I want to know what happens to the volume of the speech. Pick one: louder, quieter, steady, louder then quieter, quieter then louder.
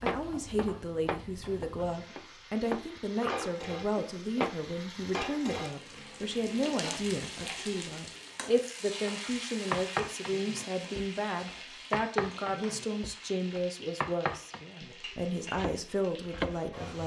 steady.